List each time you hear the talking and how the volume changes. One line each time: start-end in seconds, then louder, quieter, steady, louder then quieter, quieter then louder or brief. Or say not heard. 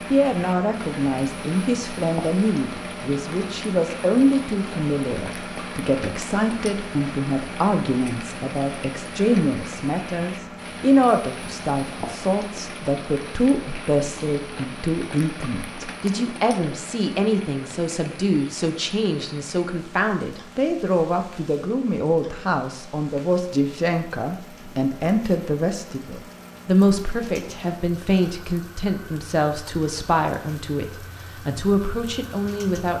0.1-32.9 steady.